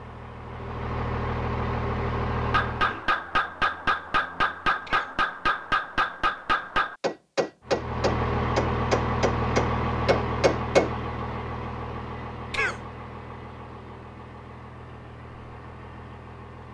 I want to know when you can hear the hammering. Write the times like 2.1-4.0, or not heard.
2.4-10.9.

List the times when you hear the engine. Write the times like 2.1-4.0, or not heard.
0.0-3.0, 7.7-16.7.